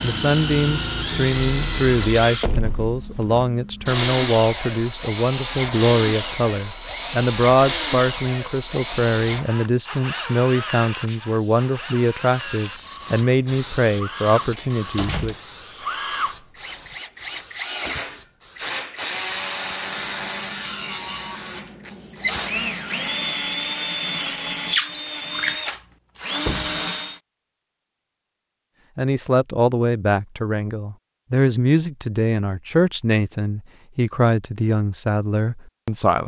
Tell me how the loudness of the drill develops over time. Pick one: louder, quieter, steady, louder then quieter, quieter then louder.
quieter then louder.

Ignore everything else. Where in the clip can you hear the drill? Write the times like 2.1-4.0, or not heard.
0.0-27.2.